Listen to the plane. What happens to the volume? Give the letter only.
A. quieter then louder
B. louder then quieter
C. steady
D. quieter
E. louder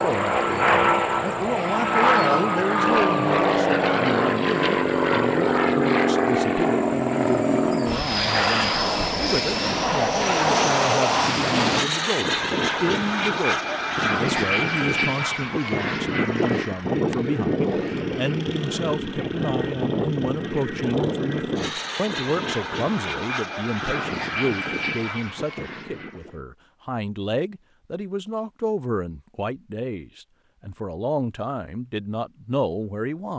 D.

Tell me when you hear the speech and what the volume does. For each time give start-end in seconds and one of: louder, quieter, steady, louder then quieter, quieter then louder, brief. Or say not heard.
0.0-33.3 steady.